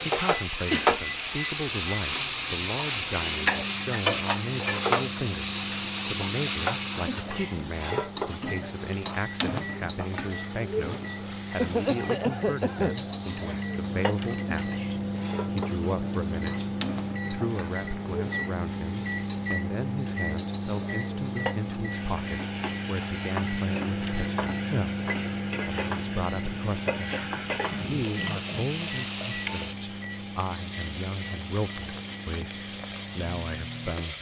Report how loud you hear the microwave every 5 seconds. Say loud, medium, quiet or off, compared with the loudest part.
medium, medium, loud, loud, loud, loud, medium.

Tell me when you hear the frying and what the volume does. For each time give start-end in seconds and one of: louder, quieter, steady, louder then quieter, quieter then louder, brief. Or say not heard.
0.0-34.1 quieter then louder.